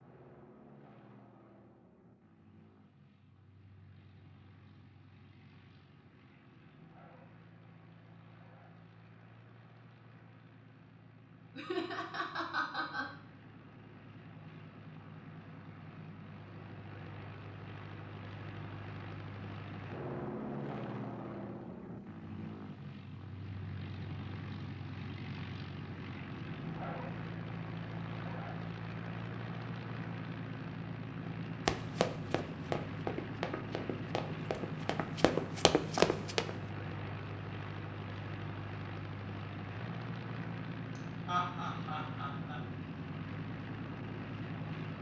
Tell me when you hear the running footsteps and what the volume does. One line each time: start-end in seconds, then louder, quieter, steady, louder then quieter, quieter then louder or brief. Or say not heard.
31.2-36.5 quieter then louder.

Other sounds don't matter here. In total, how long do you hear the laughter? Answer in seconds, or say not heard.
3 s.